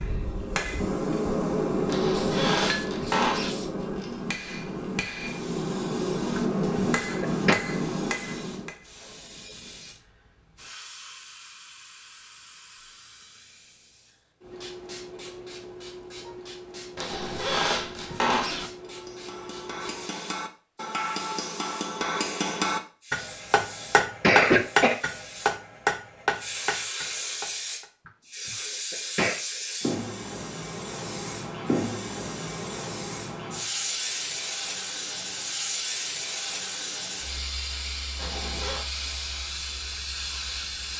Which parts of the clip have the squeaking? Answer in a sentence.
You can hear the squeaking from 1.9 to 3.5 s, from 16.9 to 18.7 s and from 38.1 to 38.9 s.